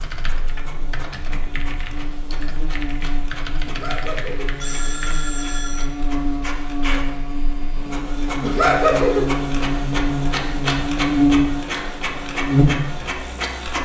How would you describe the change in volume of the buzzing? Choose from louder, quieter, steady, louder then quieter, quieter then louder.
louder.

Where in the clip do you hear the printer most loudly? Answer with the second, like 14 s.
11 s.